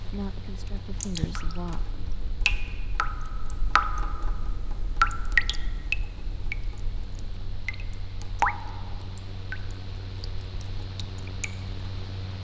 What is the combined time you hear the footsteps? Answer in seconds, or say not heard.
not heard.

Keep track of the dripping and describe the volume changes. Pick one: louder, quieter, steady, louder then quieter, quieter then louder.
louder then quieter.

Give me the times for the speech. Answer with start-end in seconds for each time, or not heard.
0.0-2.0.